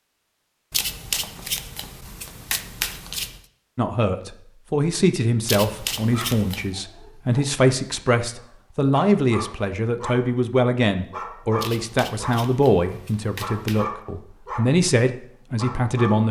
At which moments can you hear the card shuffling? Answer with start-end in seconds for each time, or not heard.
0.7-3.4, 5.5-6.7, 11.6-13.8.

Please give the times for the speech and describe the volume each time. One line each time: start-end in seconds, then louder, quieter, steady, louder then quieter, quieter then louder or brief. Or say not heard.
3.8-16.2 steady.